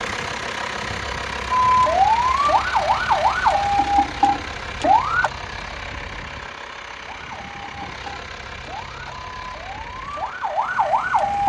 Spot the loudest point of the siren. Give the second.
2 s.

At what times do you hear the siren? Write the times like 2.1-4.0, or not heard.
1.5-5.3, 7.0-11.4.